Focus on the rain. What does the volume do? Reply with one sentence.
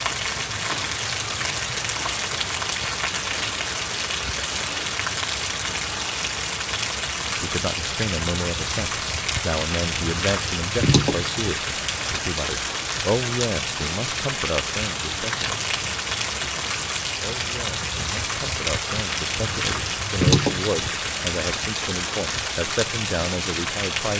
The volume of the rain stays about the same.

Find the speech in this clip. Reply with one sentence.
You can hear the speech from 7.2 to 24.1 s.